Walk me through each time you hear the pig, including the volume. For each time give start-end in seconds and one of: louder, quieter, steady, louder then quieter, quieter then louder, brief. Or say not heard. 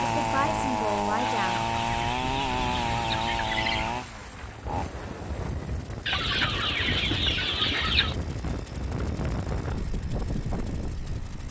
not heard.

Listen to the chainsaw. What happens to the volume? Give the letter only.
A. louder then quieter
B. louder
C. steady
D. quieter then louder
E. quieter
E.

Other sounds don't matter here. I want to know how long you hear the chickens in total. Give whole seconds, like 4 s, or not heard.
5 s.